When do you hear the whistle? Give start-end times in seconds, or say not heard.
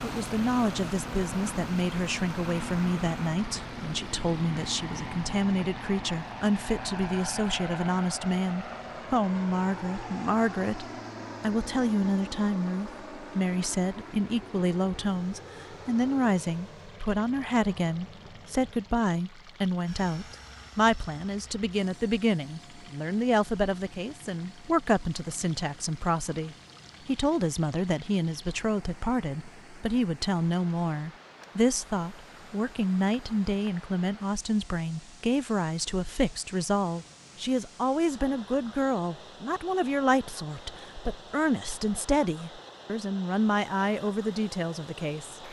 not heard.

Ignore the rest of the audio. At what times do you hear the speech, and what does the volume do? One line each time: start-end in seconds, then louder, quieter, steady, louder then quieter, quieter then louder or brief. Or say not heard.
0.0-45.4 steady.